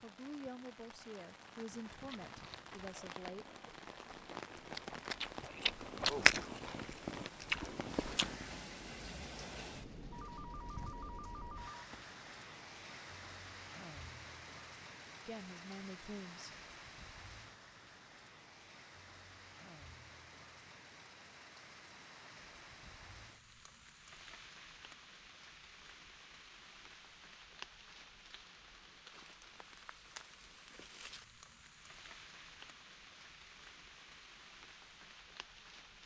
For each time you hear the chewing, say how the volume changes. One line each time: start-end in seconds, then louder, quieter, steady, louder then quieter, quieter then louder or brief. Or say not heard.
1.9-8.4 louder then quieter.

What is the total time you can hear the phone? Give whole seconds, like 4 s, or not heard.
2 s.